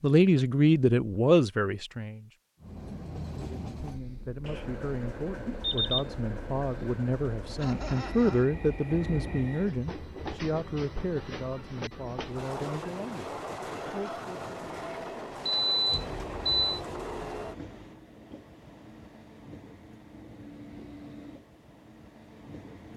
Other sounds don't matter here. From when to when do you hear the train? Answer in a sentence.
You can hear the train from 2.6 to 22.9 s.